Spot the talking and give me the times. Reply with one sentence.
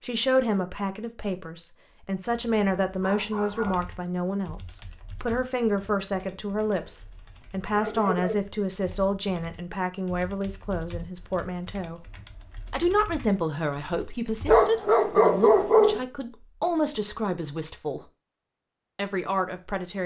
You can hear the talking from 0.0 to 12.1 s, from 12.7 to 18.0 s and from 18.9 to 20.0 s.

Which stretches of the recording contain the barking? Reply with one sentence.
The barking can be heard from 2.4 to 3.9 s, from 6.8 to 8.3 s and from 14.4 to 16.1 s.